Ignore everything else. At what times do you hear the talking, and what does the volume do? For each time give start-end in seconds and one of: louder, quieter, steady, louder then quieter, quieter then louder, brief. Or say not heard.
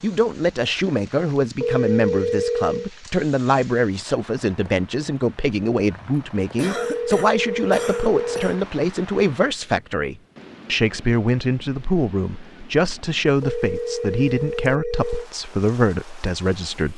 0.0-16.9 steady.